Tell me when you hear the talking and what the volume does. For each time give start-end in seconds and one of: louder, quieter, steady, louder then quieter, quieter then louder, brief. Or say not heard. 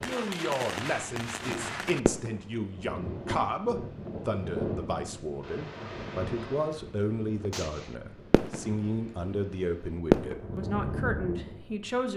0.0-12.1 steady.